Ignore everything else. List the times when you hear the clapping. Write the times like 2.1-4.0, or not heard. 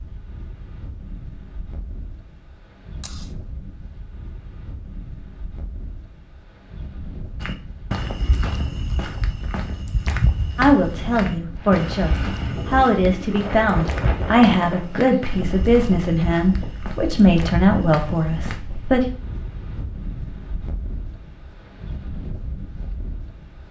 not heard.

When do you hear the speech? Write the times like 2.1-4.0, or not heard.
10.6-19.1.